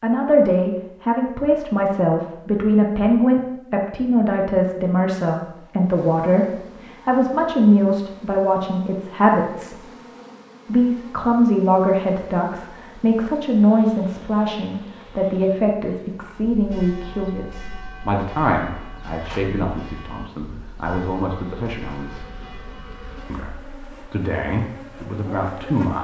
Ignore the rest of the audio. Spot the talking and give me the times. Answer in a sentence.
The talking can be heard from 0.0 to 9.8 s, from 10.7 to 22.3 s and from 23.3 to 25.9 s.